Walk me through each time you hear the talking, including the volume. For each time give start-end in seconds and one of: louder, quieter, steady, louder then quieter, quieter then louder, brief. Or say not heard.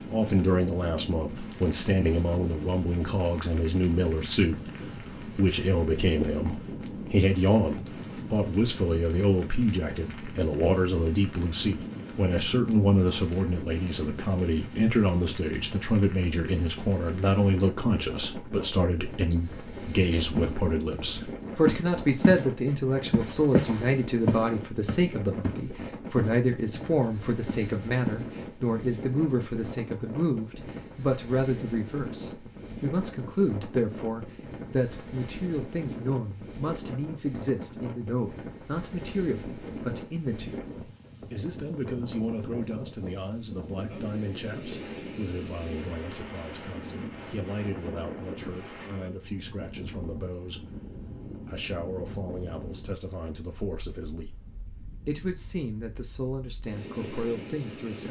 0.1-58.0 quieter.